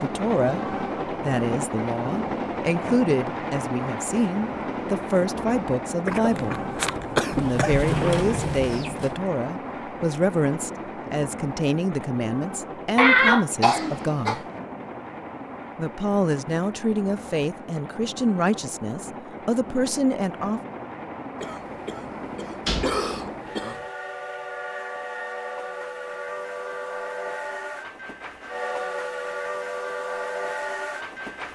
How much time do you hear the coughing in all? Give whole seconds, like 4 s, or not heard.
6 s.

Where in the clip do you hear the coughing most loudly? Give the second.
13 s.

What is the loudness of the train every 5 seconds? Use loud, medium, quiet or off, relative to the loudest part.
loud, loud, medium, medium, medium, loud, loud.